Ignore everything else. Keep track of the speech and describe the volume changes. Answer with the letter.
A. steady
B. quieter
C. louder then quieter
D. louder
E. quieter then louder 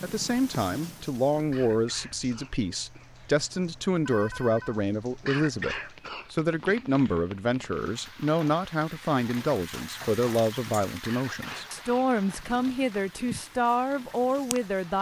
A.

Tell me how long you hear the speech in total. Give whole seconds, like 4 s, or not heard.
15 s.